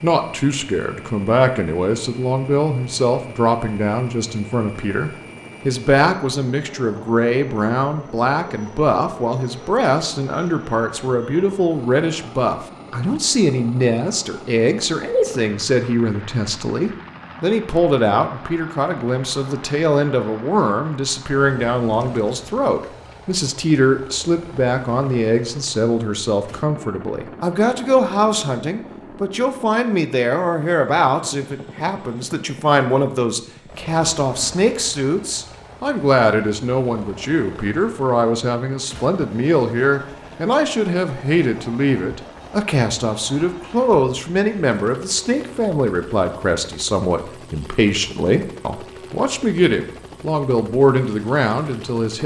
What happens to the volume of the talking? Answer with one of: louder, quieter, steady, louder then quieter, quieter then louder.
steady.